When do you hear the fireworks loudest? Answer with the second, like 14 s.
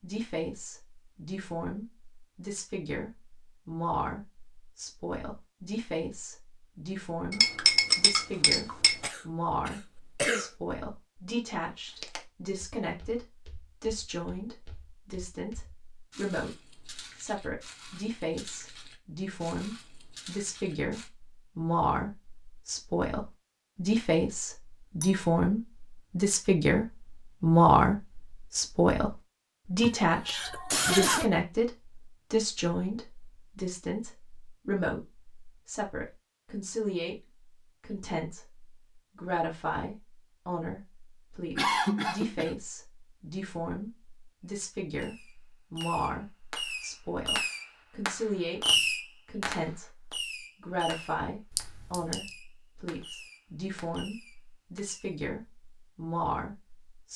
49 s.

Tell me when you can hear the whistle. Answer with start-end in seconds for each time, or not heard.
not heard.